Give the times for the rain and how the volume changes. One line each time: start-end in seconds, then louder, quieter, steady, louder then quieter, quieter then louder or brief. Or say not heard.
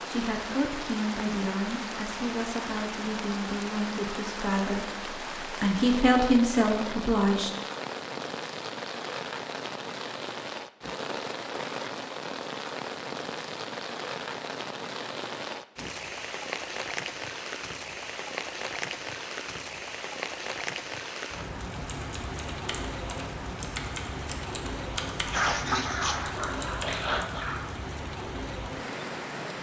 0.0-29.5 steady.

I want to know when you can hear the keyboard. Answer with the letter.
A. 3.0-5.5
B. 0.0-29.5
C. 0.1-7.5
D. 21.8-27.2
D.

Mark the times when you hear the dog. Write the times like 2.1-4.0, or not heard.
25.3-27.7.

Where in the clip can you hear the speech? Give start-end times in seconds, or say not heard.
0.1-7.5.